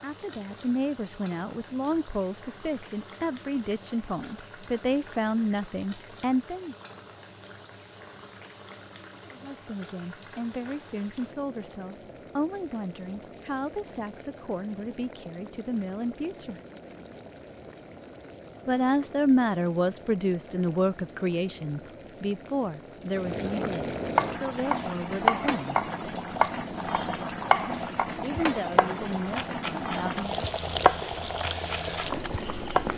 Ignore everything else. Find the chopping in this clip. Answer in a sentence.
The chopping can be heard from 24.1 to 32.9 s.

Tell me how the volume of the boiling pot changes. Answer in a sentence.
The volume of the boiling pot goes up.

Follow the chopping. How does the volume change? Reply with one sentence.
The volume of the chopping goes down, then up.